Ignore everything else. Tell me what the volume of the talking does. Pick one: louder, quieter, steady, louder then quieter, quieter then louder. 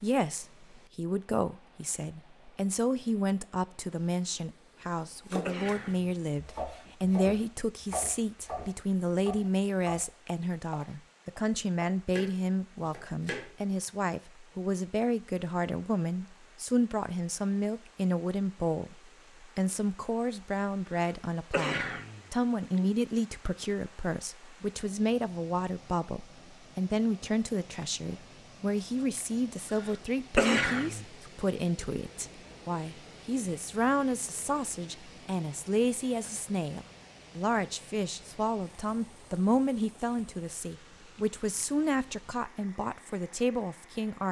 steady.